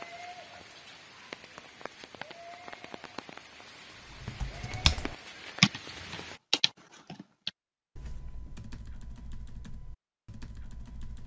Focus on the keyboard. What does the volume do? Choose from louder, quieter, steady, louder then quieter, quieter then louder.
quieter.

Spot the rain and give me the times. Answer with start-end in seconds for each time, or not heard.
0.0-6.4.